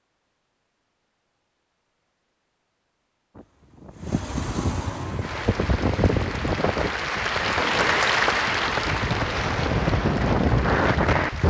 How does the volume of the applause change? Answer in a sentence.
The volume of the applause goes up, then down.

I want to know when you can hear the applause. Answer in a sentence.
You can hear the applause from 5.0 to 11.4 s.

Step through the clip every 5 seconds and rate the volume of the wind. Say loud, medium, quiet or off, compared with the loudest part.
medium, medium, loud.